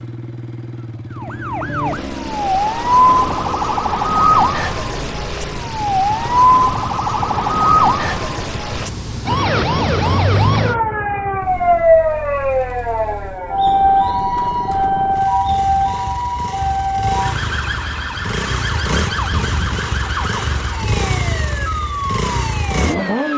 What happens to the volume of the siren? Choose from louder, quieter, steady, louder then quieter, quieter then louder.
quieter.